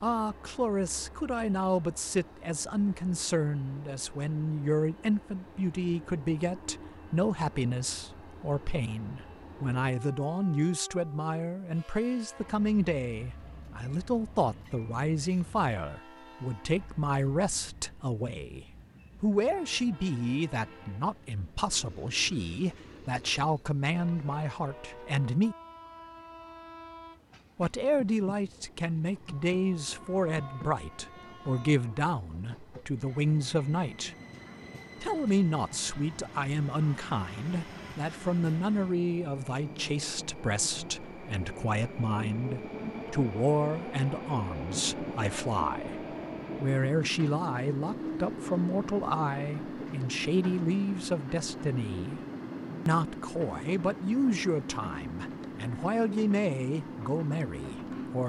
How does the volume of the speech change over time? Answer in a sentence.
The loudness of the speech stays about the same.